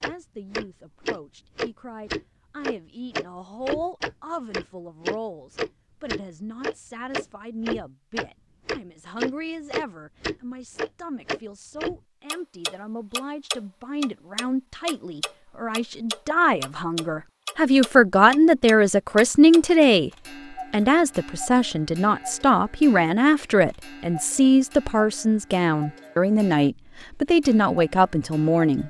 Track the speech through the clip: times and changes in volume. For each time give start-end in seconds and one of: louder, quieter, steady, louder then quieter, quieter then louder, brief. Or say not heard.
0.0-20.1 louder
20.7-28.8 steady.